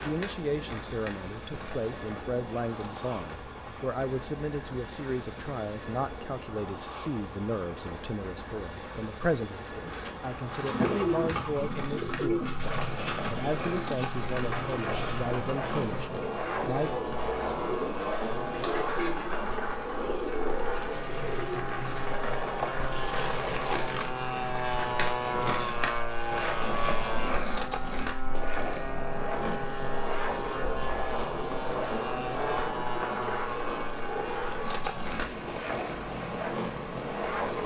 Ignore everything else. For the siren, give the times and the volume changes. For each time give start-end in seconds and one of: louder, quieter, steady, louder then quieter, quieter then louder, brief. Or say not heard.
not heard.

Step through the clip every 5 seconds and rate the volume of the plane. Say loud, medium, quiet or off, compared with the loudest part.
medium, medium, medium, medium, loud, loud, loud, medium.